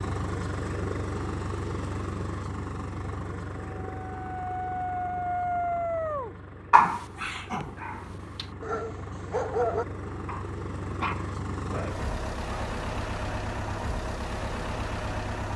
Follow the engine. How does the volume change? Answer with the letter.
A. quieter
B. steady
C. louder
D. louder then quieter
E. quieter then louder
E.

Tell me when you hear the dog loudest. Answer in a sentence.
The volume of the dog peaks at 7 seconds.